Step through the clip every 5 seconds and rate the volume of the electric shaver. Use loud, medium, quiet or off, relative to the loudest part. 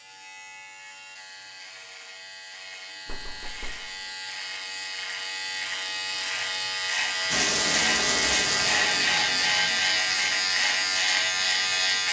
quiet, loud, loud.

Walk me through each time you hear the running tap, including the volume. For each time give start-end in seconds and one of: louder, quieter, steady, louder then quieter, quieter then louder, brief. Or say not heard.
7.3-12.0 quieter.